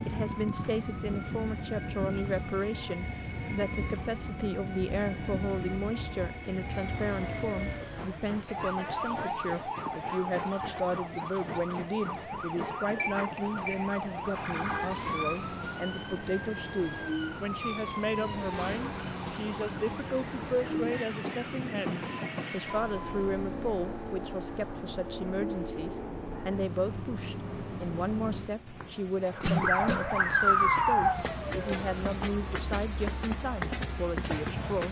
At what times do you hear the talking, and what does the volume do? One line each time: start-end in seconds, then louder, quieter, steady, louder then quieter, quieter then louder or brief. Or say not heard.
0.1-34.8 steady.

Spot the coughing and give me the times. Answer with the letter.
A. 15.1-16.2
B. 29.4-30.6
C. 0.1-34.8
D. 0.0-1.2
B.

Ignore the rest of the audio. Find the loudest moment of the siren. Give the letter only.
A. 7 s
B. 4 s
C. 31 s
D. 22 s
C.